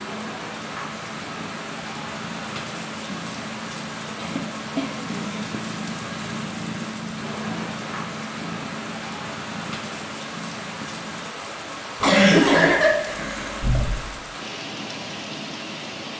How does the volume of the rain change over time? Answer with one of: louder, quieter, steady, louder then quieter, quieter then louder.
steady.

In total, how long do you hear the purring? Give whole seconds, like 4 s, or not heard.
11 s.